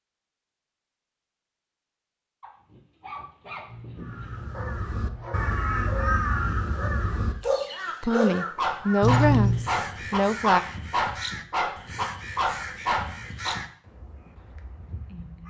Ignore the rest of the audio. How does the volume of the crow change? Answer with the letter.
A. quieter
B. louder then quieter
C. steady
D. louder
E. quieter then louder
A.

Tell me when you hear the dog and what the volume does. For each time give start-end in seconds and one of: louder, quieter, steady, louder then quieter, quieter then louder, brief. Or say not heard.
2.4-13.6 louder.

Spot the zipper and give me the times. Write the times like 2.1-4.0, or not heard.
3.6-5.5, 9.0-9.7.